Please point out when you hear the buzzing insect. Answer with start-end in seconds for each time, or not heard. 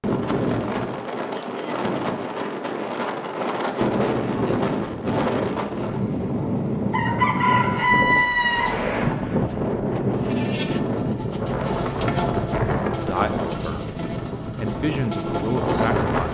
10.1-16.3.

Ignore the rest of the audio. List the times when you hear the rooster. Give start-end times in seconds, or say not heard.
6.9-8.8.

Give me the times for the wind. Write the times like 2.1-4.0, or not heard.
0.0-16.3.